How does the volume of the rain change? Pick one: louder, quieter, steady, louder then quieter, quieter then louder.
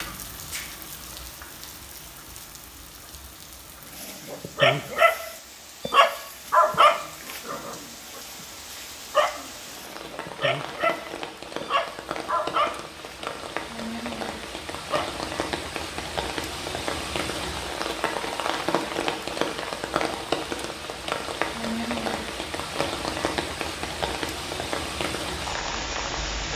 louder.